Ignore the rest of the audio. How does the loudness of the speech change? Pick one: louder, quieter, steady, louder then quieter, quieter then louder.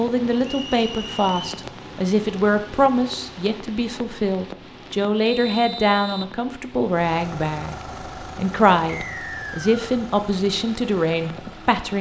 steady.